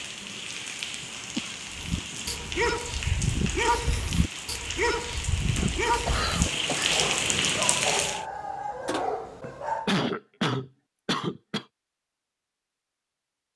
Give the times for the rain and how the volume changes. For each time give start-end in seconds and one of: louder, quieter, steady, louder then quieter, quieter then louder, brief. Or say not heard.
0.0-8.2 louder.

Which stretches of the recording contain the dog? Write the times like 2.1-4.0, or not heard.
1.7-10.1.